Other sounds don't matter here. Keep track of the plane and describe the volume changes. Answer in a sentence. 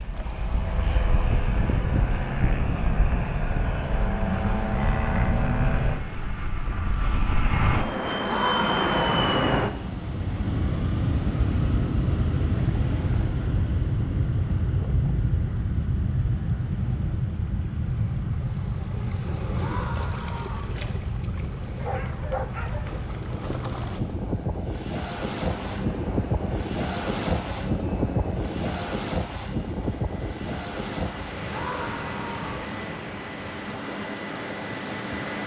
The loudness of the plane goes down.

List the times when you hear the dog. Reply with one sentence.
The dog can be heard from 21.8 to 23.0 s.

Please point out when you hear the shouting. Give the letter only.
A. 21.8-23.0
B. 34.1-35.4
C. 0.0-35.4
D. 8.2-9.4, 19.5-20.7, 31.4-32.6
D.